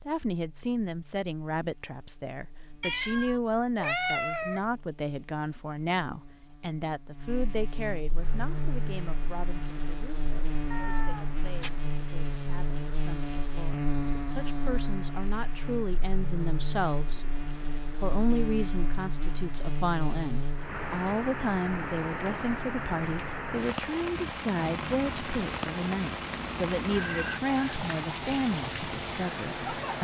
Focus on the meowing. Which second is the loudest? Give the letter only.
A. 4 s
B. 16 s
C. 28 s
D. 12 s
A.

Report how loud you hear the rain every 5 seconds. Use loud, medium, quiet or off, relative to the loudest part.
off, quiet, quiet, quiet, loud, loud.